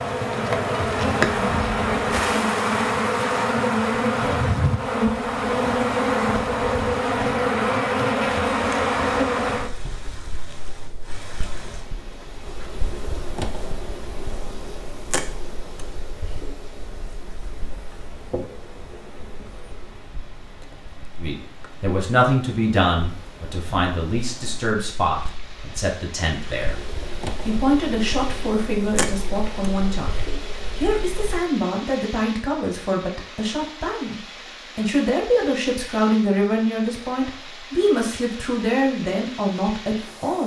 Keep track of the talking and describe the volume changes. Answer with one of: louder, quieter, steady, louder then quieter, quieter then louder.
steady.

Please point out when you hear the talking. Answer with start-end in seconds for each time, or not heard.
21.1-40.4.